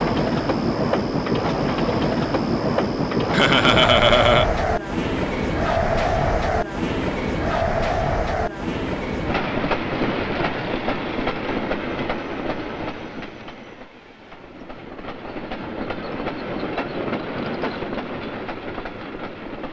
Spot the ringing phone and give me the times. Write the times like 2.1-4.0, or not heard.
not heard.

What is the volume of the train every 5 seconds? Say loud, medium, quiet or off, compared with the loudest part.
loud, loud, medium, medium.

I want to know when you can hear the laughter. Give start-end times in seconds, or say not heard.
3.3-4.5.